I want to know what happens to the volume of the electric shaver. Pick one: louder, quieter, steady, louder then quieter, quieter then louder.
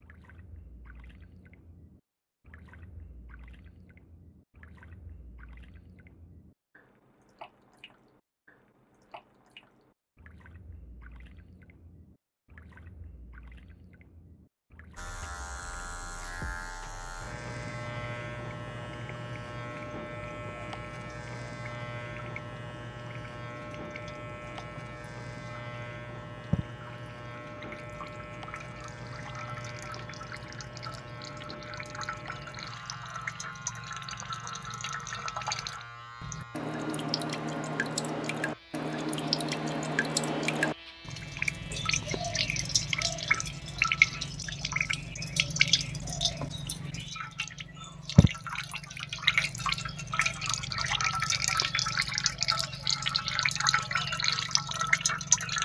quieter.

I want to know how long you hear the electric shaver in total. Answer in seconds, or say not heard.
29 s.